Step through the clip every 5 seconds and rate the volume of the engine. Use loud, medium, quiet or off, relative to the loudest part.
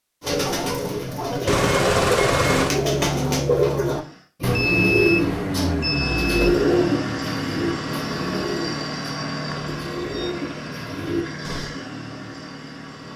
loud, loud, medium.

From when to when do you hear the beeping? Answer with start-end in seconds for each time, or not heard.
1.4-2.8, 4.4-6.7, 9.4-10.3.